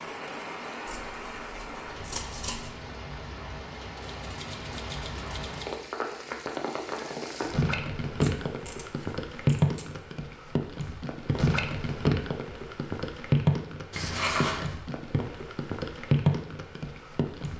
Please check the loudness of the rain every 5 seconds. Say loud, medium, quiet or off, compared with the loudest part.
medium, loud, loud, loud.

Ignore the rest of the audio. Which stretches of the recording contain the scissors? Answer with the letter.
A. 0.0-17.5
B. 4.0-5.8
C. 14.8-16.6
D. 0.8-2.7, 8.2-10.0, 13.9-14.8
D.